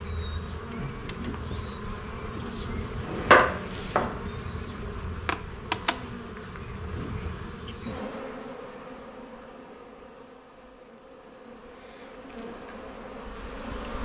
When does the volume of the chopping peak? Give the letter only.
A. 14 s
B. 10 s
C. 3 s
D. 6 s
C.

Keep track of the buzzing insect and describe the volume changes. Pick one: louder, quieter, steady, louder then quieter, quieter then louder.
quieter.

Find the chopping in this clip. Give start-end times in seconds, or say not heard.
2.8-5.0.